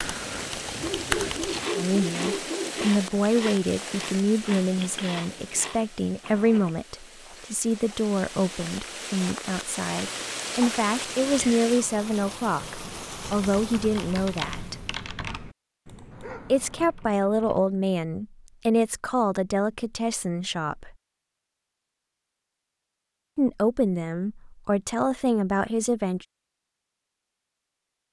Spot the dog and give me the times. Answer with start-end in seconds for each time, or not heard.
0.8-2.9, 16.1-16.9.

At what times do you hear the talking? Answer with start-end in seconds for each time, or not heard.
1.8-14.8, 16.5-20.9, 23.4-26.2.